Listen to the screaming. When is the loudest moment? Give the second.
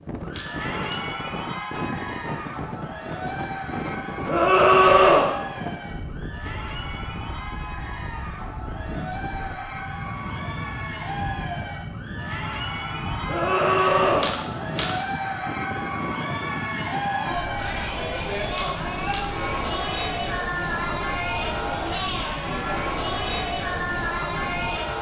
5 s.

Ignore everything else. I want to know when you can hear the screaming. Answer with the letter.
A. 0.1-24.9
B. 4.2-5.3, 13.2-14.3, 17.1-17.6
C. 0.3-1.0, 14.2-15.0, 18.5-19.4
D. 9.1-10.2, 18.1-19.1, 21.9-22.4
B.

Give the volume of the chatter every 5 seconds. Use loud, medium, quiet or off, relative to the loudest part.
medium, medium, medium, loud, loud.